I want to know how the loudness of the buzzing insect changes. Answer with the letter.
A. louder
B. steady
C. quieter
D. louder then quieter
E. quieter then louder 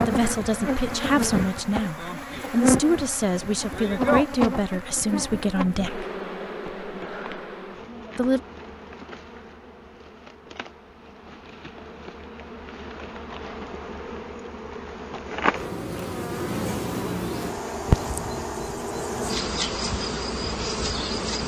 E.